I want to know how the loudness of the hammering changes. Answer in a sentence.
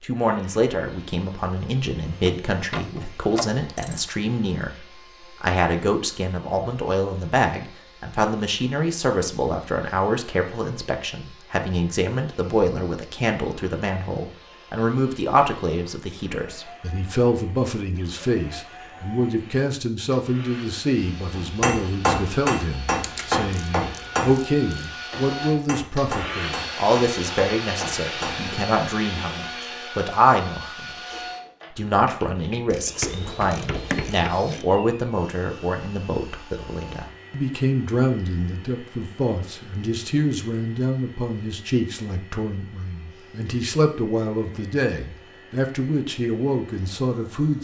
The loudness of the hammering goes down.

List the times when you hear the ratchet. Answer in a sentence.
You can hear the ratchet from 2.0 to 4.0 s, from 23.0 to 24.9 s and from 32.7 to 34.6 s.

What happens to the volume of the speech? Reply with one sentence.
The volume of the speech stays about the same.